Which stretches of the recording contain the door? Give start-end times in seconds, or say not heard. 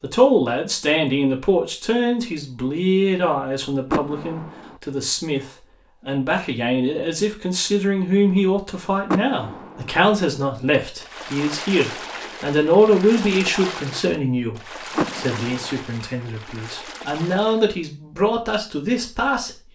3.9-4.8, 9.1-9.9, 14.9-15.6.